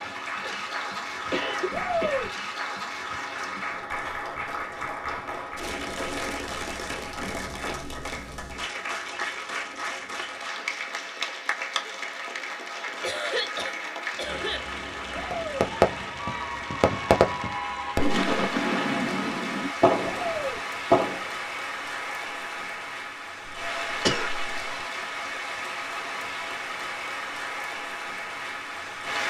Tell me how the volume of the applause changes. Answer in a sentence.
The loudness of the applause stays about the same.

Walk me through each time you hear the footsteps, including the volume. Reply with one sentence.
You can't hear the footsteps here.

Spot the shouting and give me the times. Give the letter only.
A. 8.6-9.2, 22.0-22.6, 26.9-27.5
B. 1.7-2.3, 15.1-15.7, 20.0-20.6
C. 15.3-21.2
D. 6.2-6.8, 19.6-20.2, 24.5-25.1
B.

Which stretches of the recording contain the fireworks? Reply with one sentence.
You can hear the fireworks from 15.3 to 21.2 s.